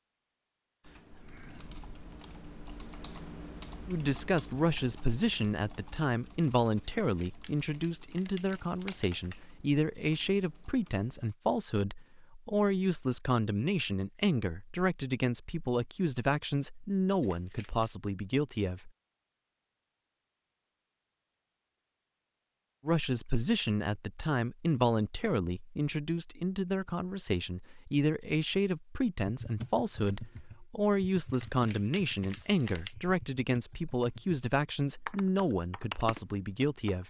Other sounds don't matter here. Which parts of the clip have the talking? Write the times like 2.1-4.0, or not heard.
3.9-18.9, 22.9-37.0.